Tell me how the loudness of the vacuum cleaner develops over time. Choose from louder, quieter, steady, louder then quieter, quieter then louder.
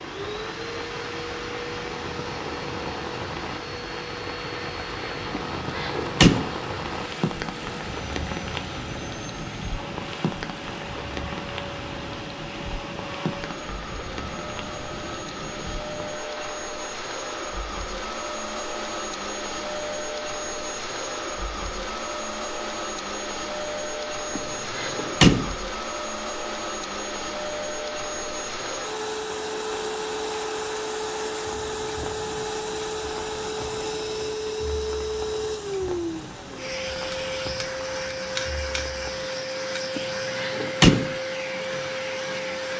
louder.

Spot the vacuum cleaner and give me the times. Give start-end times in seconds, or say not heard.
0.0-42.7.